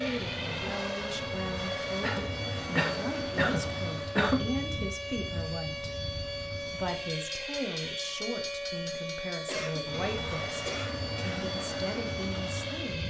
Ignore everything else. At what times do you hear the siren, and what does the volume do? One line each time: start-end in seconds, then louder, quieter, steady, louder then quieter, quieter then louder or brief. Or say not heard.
0.0-13.0 steady.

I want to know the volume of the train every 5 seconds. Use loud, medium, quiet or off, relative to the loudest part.
loud, medium, loud.